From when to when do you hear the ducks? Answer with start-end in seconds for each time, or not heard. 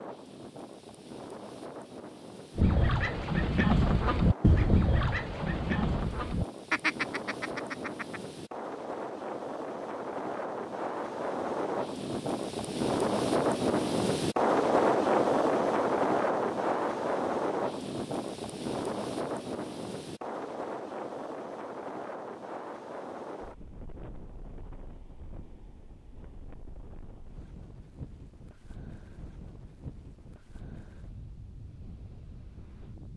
2.5-8.2.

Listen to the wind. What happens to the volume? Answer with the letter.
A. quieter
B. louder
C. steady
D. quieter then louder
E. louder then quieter
E.